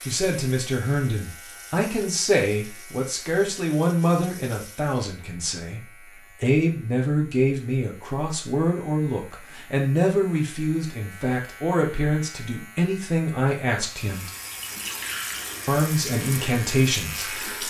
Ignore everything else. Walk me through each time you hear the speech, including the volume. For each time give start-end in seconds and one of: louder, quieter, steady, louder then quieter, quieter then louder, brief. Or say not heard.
0.0-14.2 steady
15.7-17.4 brief.